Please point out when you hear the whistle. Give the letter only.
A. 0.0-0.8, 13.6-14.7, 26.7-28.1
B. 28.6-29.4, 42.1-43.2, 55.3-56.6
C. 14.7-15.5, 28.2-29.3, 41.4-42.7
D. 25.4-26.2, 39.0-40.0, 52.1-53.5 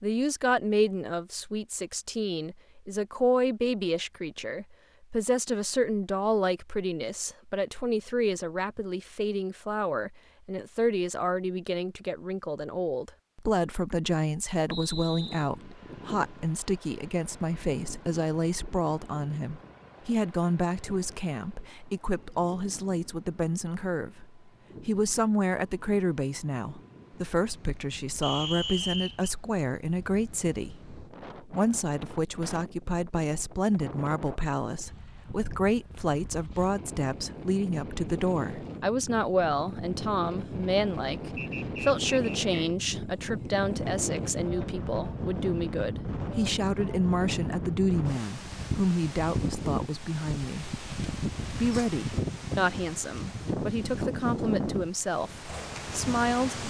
C.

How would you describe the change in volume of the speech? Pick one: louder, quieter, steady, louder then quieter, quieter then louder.
steady.